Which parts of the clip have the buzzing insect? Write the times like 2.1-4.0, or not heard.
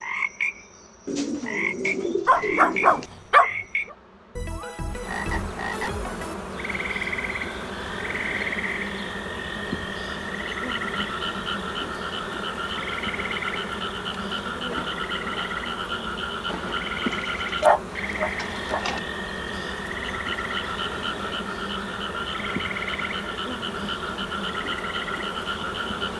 0.0-26.1.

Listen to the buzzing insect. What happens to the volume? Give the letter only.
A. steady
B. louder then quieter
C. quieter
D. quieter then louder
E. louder
E.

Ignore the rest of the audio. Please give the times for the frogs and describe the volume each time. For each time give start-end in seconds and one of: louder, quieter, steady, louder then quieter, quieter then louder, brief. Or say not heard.
0.0-26.1 steady.